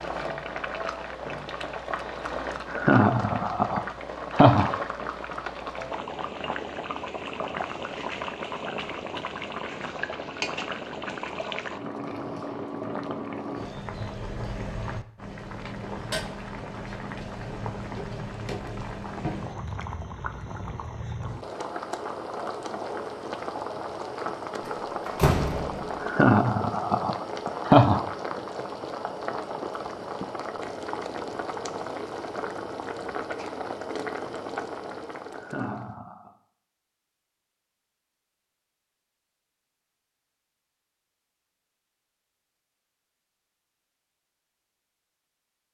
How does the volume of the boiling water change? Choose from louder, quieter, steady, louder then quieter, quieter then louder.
steady.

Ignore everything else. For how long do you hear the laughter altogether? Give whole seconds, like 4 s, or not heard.
5 s.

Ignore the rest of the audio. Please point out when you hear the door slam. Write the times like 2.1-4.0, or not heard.
24.6-26.0.